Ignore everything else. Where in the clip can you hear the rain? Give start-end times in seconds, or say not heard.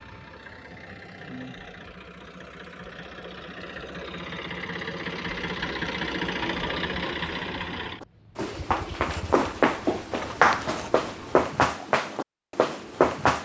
not heard.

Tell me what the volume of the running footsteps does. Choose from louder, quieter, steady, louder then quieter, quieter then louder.
louder then quieter.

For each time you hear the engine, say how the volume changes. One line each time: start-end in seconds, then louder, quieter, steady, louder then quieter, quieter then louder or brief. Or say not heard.
0.0-11.3 louder then quieter.